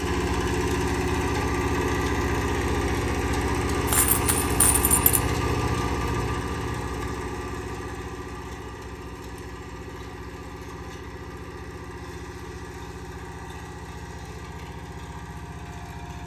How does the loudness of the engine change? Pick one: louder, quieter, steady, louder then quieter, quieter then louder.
quieter.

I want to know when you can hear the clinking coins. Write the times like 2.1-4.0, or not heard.
3.9-5.2.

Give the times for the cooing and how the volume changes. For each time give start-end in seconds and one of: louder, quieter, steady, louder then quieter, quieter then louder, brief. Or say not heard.
not heard.